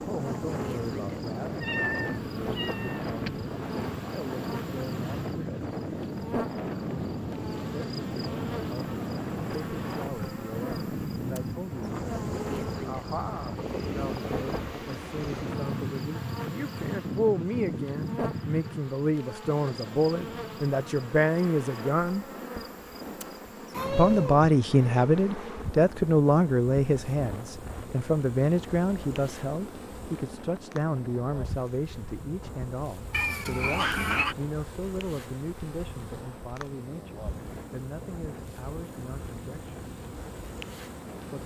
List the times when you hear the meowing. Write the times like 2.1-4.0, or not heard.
1.6-3.5, 23.7-24.5, 33.1-34.4.